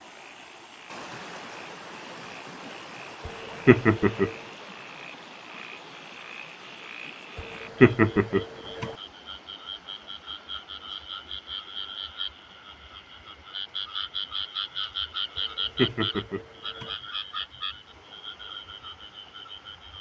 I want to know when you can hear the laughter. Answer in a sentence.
The laughter can be heard from 3.2 to 4.3 s, from 7.3 to 8.9 s and from 15.3 to 16.9 s.